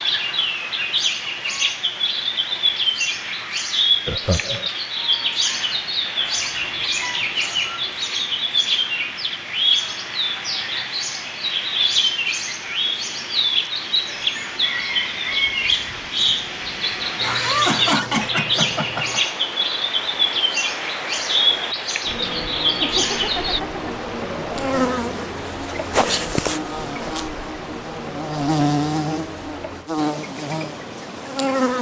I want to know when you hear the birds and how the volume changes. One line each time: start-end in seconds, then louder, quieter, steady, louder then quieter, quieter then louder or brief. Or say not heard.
0.0-23.6 steady.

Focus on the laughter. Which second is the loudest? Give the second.
18 s.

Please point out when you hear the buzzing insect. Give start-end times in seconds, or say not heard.
24.6-31.7.